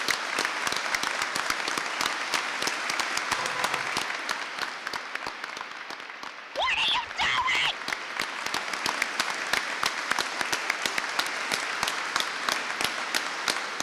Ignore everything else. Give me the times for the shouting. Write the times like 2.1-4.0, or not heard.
6.5-7.8.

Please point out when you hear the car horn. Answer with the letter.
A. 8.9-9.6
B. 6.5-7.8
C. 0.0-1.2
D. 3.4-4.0
D.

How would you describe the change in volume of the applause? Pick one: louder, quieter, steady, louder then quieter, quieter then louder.
quieter then louder.